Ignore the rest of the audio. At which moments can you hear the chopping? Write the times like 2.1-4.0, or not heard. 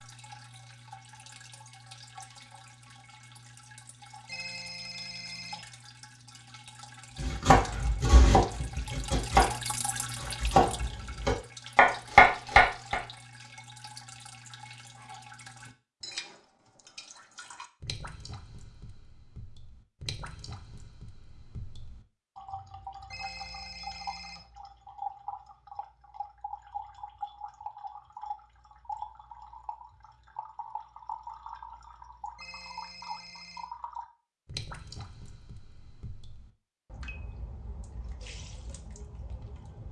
7.2-13.0.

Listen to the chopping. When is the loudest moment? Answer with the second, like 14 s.
12 s.